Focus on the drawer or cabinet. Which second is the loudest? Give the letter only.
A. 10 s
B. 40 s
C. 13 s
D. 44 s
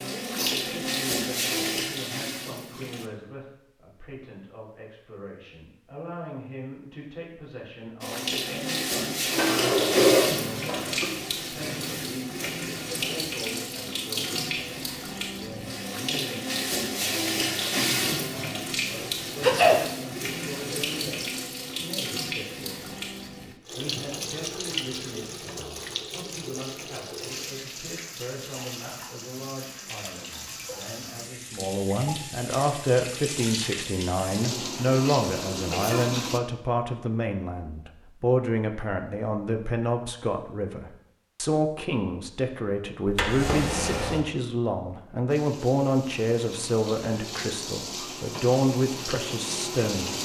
A.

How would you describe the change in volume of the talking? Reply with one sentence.
The volume of the talking goes up.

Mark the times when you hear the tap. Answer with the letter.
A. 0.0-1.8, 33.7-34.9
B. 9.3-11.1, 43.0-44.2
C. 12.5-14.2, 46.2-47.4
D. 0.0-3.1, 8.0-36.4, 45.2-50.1
D.